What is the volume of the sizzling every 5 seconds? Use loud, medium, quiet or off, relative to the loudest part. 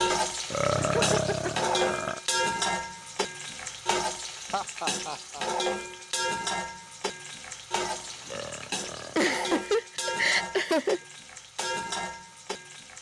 loud, loud, medium.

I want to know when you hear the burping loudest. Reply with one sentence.
The loudest moment of the burping is at 1 second.